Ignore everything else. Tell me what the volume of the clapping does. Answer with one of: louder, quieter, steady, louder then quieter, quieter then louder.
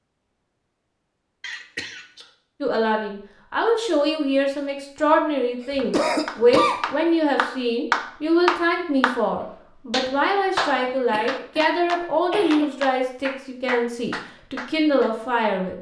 louder then quieter.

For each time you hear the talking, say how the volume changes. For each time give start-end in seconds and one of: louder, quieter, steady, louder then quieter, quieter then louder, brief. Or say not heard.
2.6-15.7 steady.